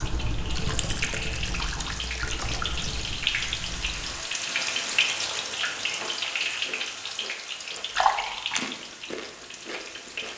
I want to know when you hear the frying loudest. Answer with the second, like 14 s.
5 s.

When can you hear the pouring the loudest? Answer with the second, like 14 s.
8 s.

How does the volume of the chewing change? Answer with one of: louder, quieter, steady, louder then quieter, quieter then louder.
quieter then louder.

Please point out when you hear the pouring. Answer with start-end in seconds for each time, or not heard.
0.6-3.0, 7.8-8.6.